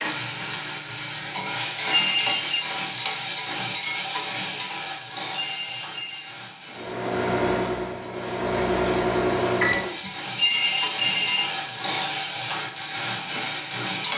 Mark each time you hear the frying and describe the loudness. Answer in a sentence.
You can hear the frying from 0.0 to 14.1 s, getting quieter then louder.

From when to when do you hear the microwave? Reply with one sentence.
The microwave can be heard from 6.7 to 10.1 s.